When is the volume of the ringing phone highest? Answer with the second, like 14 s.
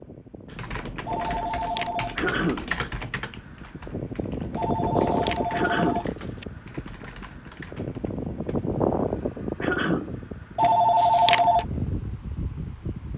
11 s.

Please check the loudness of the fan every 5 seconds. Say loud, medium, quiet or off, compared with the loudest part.
medium, loud, medium.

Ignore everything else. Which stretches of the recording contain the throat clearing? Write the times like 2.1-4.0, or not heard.
2.1-2.7, 5.5-6.1, 9.6-10.2.